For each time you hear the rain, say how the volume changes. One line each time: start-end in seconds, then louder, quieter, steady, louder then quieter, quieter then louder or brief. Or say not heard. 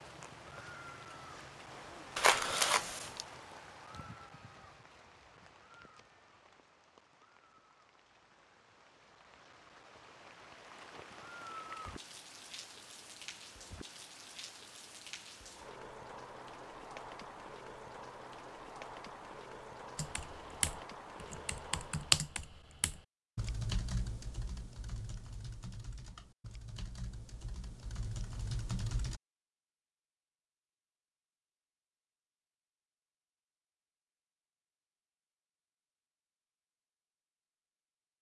0.0-22.4 quieter then louder.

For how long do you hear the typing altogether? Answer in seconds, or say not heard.
9 s.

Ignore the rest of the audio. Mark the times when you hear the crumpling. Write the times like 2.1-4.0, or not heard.
2.1-3.2.